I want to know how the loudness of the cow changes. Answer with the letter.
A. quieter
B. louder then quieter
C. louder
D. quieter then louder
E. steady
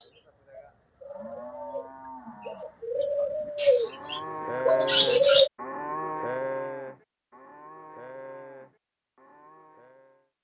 B.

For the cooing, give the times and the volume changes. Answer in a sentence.
You can hear the cooing from 0.0 to 5.5 s, getting louder.